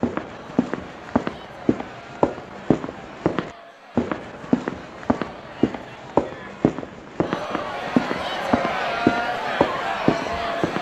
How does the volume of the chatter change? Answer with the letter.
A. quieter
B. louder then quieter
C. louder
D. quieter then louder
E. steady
C.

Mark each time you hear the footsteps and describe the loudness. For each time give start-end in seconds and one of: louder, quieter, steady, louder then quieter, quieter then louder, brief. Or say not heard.
0.0-10.7 steady.